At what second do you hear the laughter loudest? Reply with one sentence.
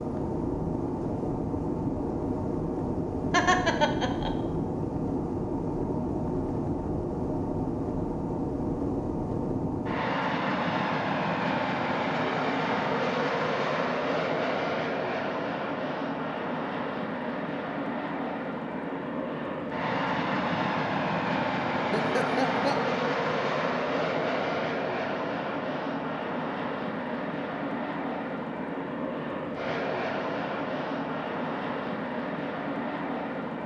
The volume of the laughter peaks at 4 seconds.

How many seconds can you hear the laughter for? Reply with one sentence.
You can hear the laughter for 2 seconds altogether.